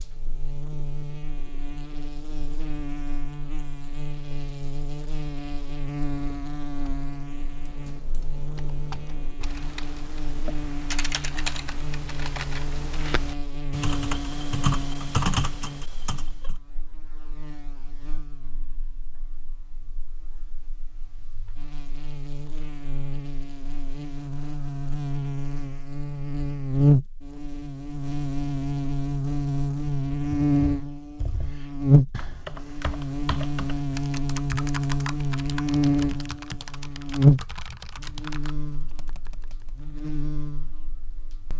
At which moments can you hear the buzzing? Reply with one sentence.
The buzzing can be heard from 0.0 to 41.5 s.